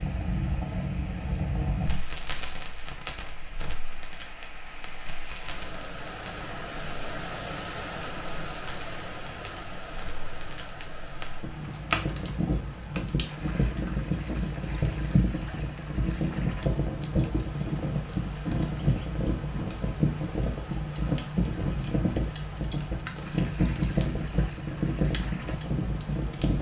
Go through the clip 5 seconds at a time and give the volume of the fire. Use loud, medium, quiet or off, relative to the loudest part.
medium, quiet, loud, loud, loud, loud.